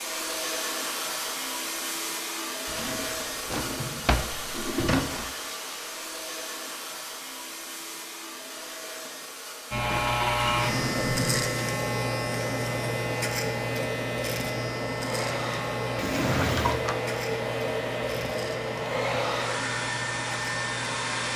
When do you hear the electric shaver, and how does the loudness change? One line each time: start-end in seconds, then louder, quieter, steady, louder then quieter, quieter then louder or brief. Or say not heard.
9.7-21.3 quieter.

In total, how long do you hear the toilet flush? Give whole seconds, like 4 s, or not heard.
4 s.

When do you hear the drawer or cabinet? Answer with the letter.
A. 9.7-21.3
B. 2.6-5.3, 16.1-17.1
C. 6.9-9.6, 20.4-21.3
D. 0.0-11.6
B.